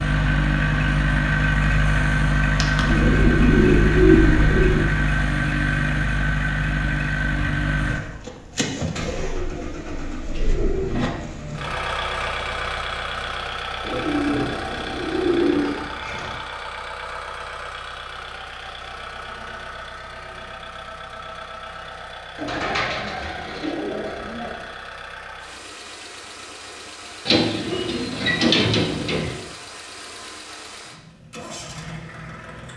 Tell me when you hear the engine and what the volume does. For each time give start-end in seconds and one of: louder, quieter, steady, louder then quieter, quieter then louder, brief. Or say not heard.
0.0-32.7 quieter.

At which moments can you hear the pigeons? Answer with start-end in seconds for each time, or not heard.
2.8-4.8, 9.1-11.1, 13.8-16.4, 22.4-24.6, 27.2-29.3.